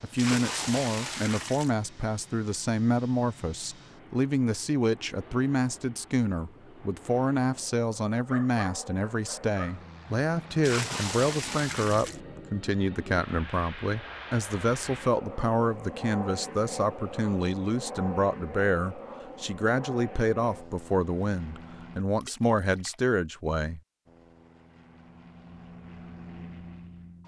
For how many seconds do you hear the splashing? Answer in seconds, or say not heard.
4 s.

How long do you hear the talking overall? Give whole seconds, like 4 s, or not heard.
24 s.